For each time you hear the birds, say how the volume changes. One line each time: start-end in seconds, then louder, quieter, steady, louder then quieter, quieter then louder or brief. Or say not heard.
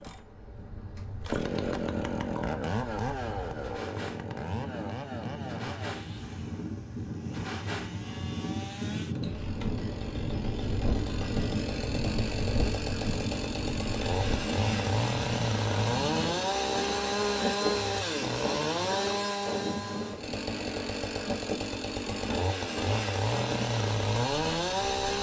not heard.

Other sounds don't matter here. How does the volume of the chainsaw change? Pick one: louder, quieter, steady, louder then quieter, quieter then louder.
quieter then louder.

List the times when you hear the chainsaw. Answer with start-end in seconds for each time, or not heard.
0.0-25.1.